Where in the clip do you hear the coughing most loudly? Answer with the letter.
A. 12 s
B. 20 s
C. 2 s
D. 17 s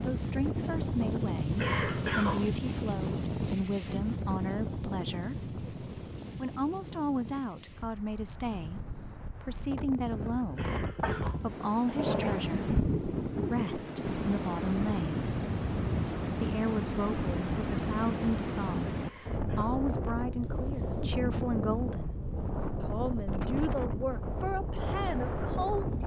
C.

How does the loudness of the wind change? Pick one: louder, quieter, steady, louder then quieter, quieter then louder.
quieter then louder.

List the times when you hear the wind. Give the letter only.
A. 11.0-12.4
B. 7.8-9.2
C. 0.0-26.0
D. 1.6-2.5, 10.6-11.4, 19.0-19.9
C.